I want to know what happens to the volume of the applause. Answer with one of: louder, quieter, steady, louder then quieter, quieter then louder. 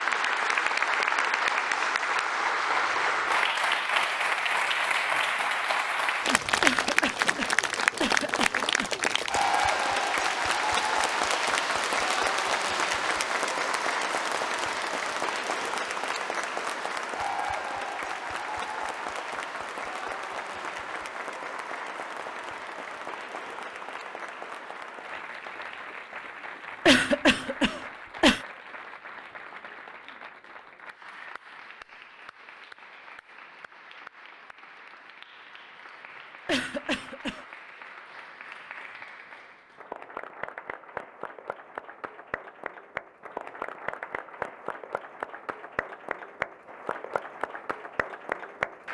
quieter then louder.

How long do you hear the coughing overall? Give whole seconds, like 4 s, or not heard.
5 s.